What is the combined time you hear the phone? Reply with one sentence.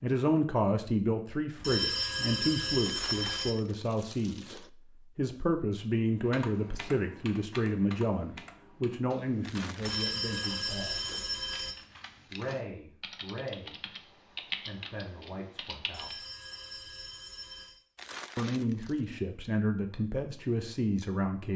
The phone can be heard for 6 seconds in total.